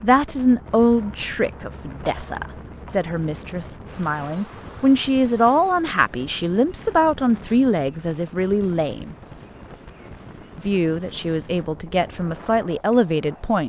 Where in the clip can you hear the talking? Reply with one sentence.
The talking can be heard from 0.0 to 9.2 s and from 10.6 to 13.6 s.